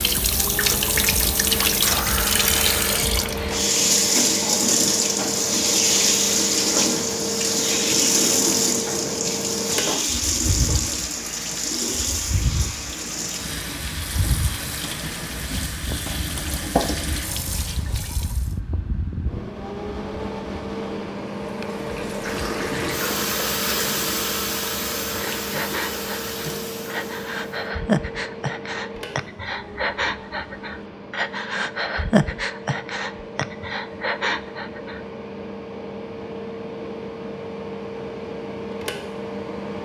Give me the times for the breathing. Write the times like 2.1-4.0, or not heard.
25.1-35.0.